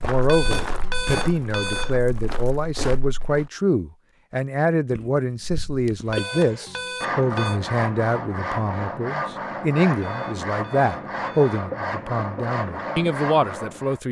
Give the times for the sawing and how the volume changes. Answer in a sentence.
You can hear the sawing from 6.0 to 14.0 s, at a steady volume.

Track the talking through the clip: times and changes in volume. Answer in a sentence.
You can hear the talking from 0.0 to 14.0 s, at a steady volume.